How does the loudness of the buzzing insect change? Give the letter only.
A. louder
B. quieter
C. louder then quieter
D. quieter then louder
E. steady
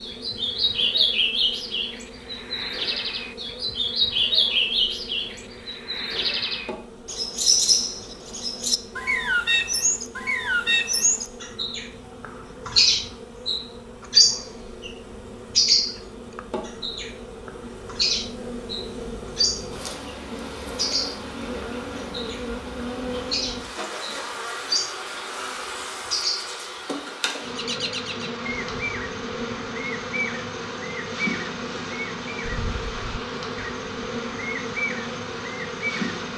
A.